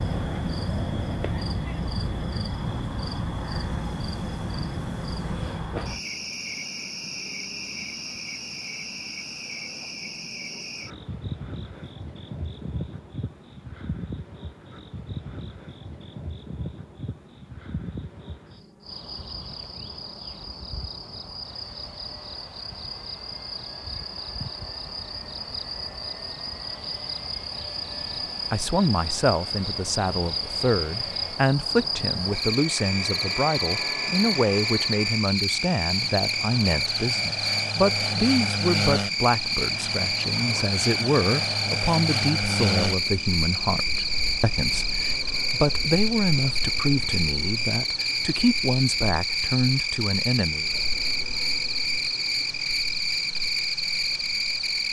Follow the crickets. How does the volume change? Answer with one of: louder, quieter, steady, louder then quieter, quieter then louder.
quieter then louder.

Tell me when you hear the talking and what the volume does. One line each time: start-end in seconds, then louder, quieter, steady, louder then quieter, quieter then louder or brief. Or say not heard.
28.1-50.6 steady.